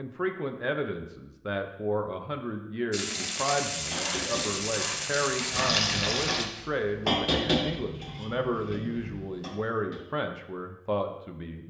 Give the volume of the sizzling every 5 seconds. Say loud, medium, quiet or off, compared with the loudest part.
loud, loud, off.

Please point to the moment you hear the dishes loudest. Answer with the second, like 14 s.
7 s.